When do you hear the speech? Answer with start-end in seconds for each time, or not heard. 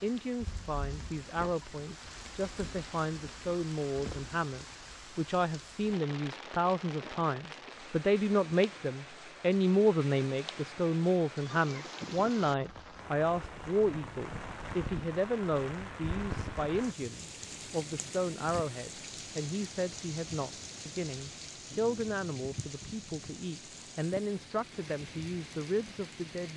0.0-26.5.